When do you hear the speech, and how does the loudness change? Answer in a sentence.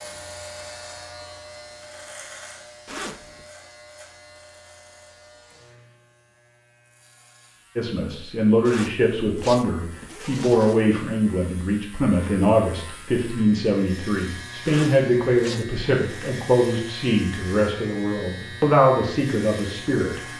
You can hear the speech from 7.8 to 20.2 s, at a steady volume.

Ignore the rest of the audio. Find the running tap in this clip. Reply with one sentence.
You can't hear the running tap here.